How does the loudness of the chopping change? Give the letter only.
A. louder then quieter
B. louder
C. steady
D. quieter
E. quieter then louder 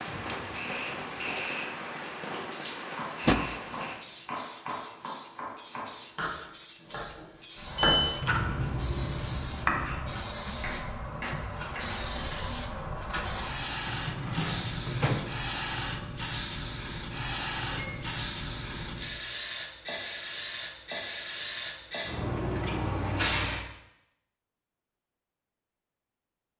A.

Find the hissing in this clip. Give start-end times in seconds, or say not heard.
0.0-23.6.